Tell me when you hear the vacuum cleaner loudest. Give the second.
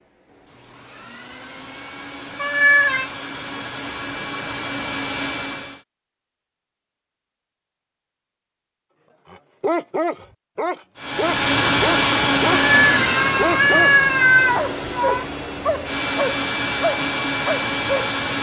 12 s.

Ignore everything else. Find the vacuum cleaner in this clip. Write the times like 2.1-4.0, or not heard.
0.0-5.8, 10.9-18.3.